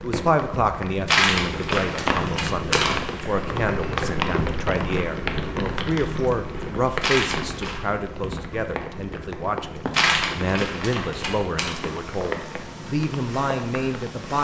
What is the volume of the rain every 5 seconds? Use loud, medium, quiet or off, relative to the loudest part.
loud, loud, medium.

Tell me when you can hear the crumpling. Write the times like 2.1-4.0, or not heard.
1.1-3.0, 7.0-7.8, 9.9-11.8.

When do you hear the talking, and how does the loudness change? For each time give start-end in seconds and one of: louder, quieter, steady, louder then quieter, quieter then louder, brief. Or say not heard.
0.0-14.3 steady.